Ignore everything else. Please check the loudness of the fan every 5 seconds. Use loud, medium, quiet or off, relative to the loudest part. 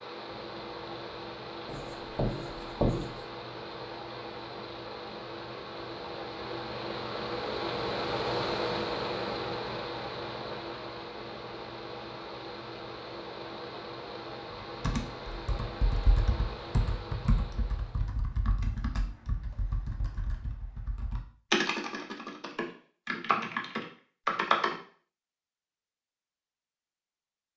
medium, loud, medium, medium, off, off.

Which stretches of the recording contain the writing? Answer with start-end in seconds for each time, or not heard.
1.6-3.1.